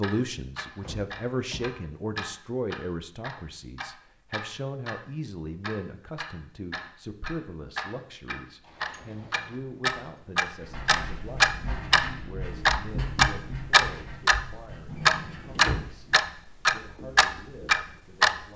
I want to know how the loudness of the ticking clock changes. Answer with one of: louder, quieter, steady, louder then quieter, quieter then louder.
louder.